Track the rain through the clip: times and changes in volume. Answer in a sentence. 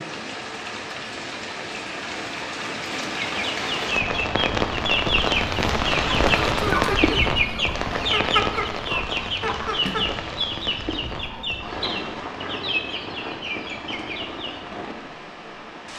You can hear the rain from 0.0 to 15.9 s, getting louder then quieter.